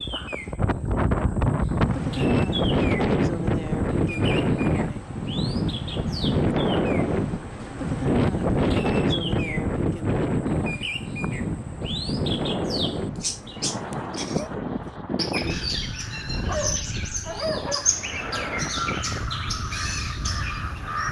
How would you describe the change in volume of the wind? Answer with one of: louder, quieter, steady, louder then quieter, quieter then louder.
quieter.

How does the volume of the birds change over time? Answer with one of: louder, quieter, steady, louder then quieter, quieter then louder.
louder.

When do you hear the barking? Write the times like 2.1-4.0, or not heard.
16.4-17.9.